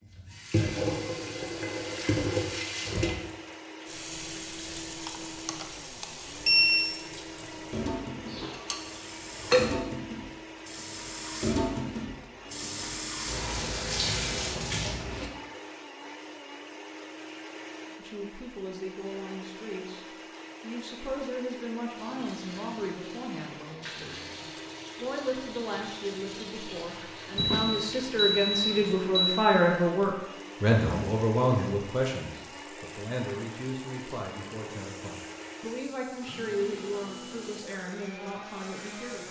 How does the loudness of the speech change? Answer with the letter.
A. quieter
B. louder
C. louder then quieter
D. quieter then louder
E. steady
C.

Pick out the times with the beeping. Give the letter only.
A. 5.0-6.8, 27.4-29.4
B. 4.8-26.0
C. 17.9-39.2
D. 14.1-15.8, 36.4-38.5
A.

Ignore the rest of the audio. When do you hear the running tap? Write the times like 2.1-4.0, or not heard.
0.0-15.3, 21.9-39.2.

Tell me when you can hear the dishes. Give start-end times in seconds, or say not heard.
7.4-9.7.